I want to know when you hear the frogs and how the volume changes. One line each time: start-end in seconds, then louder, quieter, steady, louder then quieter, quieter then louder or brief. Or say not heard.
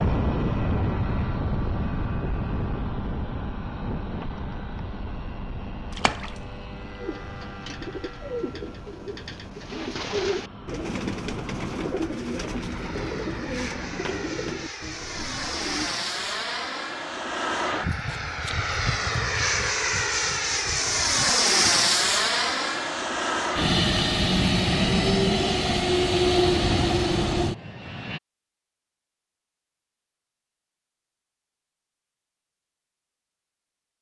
not heard.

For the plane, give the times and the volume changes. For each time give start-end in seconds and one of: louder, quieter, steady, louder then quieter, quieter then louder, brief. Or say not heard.
0.0-28.2 quieter then louder.